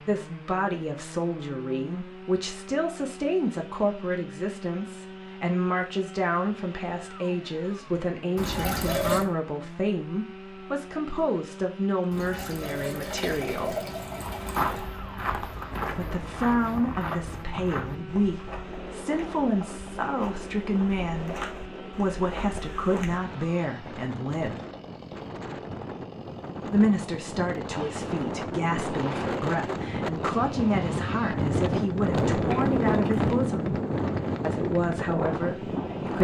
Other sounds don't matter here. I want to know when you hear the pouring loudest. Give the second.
9 s.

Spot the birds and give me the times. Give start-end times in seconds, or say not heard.
not heard.